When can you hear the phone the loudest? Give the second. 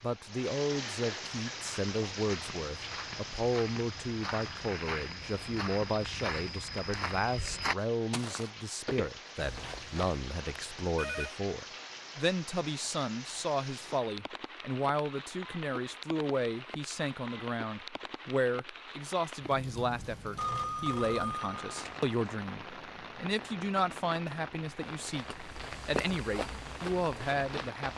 21 s.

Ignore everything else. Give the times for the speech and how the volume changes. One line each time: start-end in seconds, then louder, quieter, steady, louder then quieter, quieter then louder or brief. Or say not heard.
0.0-27.9 steady.